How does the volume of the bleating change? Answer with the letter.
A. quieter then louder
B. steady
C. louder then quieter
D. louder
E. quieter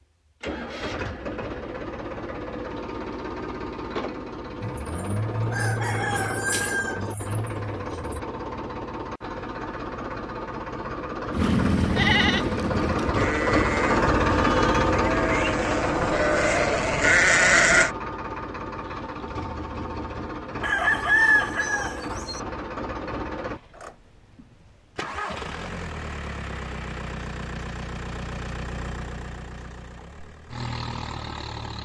A.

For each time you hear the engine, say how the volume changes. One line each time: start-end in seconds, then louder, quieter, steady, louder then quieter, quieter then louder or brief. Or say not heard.
0.4-31.7 louder then quieter.